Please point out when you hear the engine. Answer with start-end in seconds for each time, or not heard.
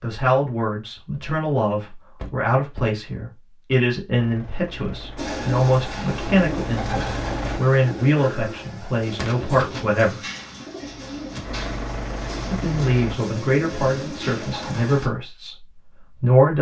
4.2-7.6, 10.8-13.2.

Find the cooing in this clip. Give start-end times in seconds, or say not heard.
5.2-15.1.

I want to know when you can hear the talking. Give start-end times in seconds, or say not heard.
0.0-10.2, 12.5-16.5.